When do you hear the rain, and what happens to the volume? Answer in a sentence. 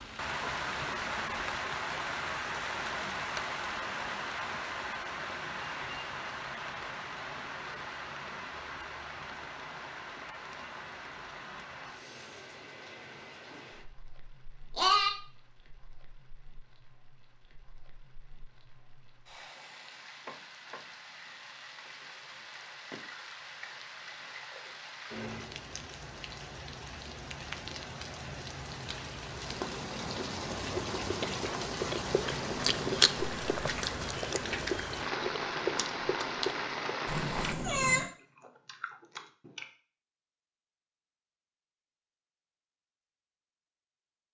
The rain can be heard from 0.0 to 37.5 s, getting quieter then louder.